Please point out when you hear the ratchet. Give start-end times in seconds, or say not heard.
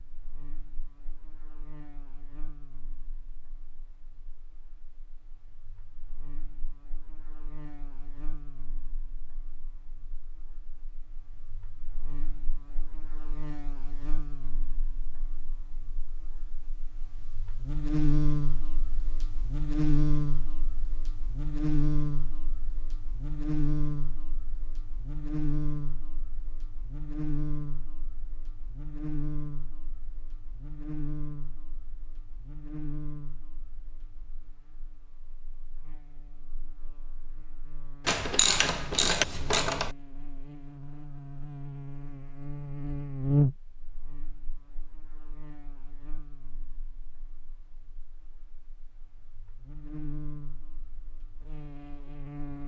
38.0-39.9.